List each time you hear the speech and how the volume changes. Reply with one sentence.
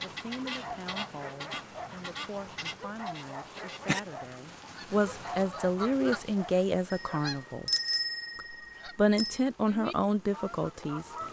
The speech can be heard from 0.0 to 7.7 s, getting louder; and briefly from 8.3 to 11.1 s.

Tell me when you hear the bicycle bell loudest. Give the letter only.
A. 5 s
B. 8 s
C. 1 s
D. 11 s
B.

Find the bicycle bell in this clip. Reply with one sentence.
You can hear the bicycle bell from 6.9 to 9.4 s.